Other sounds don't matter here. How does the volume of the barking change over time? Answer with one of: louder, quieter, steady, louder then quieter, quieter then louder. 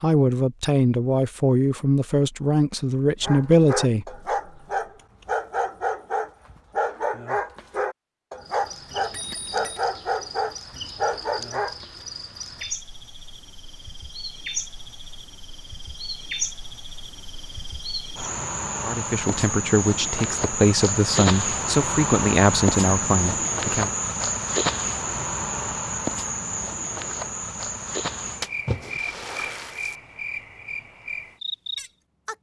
steady.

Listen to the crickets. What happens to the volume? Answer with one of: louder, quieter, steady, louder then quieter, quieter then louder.
louder then quieter.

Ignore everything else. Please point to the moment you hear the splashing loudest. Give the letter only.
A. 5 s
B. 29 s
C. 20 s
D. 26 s
B.